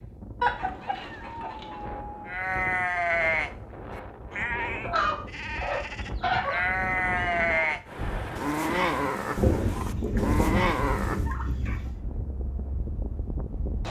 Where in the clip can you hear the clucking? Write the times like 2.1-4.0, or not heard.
0.4-1.8, 4.8-6.7, 9.3-12.0.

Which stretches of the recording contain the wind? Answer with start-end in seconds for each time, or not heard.
0.0-13.8.